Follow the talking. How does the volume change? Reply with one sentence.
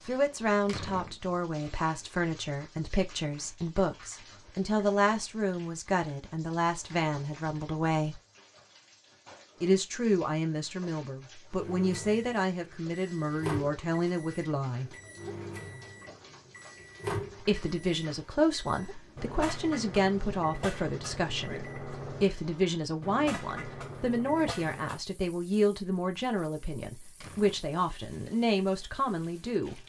The volume of the talking stays about the same.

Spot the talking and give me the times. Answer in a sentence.
You can hear the talking from 0.1 to 8.2 s, from 9.6 to 14.9 s and from 17.4 to 29.8 s.